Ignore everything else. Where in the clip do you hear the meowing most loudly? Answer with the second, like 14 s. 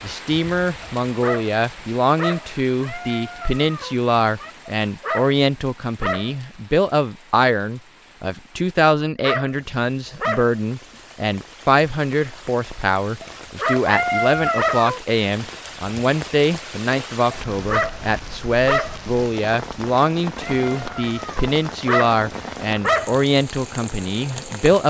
14 s.